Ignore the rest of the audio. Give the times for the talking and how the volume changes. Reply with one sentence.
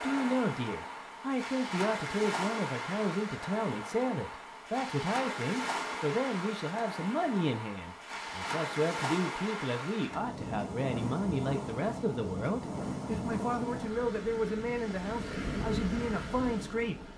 The talking can be heard from 0.0 to 17.1 s, at a steady volume.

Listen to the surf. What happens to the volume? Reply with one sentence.
The loudness of the surf stays about the same.